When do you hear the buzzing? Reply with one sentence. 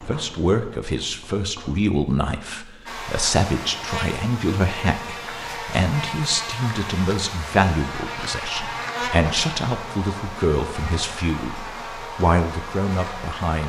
The buzzing can be heard from 2.9 to 13.6 s.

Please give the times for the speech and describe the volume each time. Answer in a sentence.
You can hear the speech from 0.0 to 13.6 s, at a steady volume.